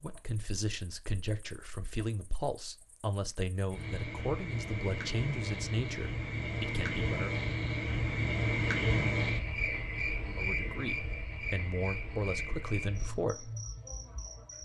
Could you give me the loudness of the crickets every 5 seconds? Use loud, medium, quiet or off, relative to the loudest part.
medium, loud, medium.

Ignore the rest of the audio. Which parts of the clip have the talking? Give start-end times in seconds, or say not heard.
0.0-7.3, 10.2-13.5.